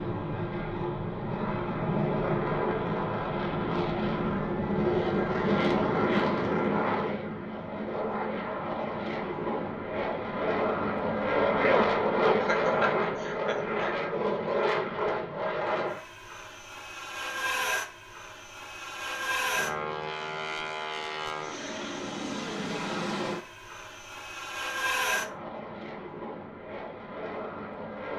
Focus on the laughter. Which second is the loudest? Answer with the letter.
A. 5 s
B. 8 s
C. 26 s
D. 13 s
D.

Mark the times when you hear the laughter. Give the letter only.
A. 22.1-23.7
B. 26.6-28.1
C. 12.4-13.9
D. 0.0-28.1
C.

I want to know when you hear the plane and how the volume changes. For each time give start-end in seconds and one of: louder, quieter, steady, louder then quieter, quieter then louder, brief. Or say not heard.
0.0-28.1 quieter.